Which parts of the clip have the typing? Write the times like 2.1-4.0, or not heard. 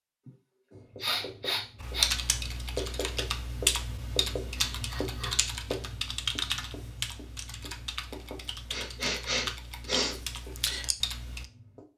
1.8-11.4.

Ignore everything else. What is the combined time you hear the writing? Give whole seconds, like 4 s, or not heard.
11 s.